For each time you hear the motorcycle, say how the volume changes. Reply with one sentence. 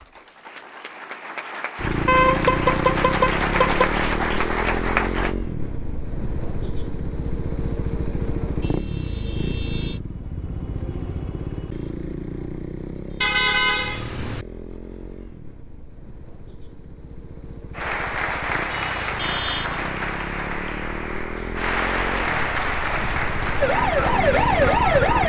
The motorcycle can be heard from 1.8 to 25.2 s, getting quieter then louder.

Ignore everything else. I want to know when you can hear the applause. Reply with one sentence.
The applause can be heard from 0.0 to 5.3 s and from 17.7 to 25.2 s.